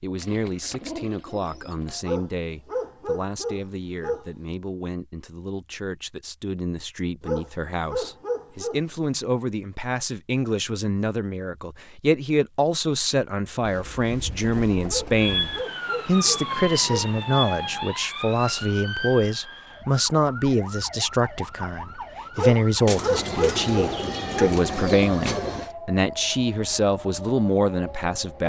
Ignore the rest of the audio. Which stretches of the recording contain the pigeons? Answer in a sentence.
The pigeons can be heard from 0.1 to 2.0 s, from 13.6 to 15.7 s and from 22.9 to 25.7 s.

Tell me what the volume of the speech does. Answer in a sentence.
The volume of the speech goes up.